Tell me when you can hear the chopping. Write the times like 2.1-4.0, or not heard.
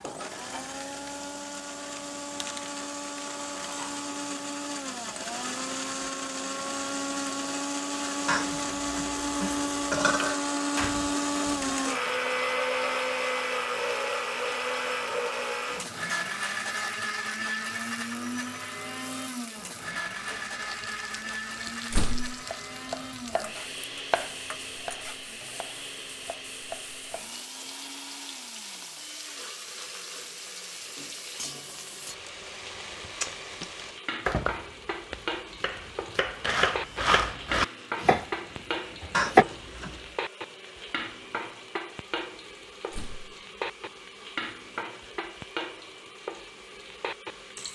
22.4-27.4, 34.2-38.3, 39.0-39.5.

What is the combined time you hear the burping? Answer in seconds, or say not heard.
3 s.